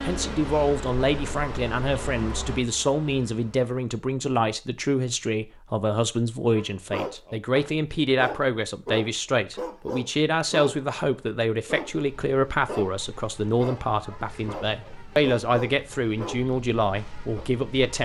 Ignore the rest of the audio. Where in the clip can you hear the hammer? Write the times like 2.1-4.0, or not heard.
not heard.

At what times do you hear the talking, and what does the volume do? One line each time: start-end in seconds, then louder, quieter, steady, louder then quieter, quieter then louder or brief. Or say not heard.
0.0-17.9 steady.